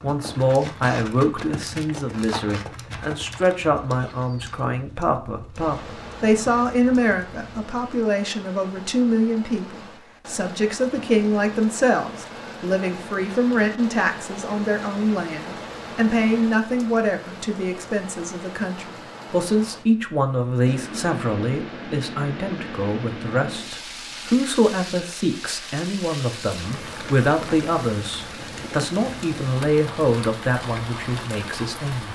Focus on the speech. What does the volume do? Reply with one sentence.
The loudness of the speech stays about the same.